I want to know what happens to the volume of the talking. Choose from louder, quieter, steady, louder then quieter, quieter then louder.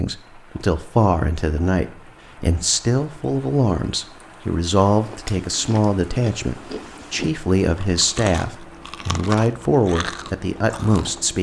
steady.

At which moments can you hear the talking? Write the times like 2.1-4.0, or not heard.
0.0-11.3.